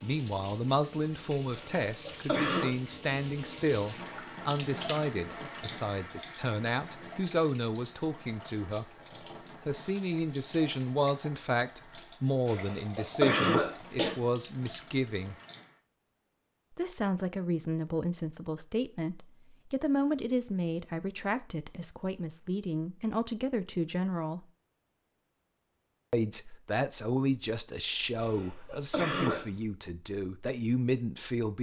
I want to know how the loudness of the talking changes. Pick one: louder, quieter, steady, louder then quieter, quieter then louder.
steady.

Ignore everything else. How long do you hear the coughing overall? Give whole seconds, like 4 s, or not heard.
4 s.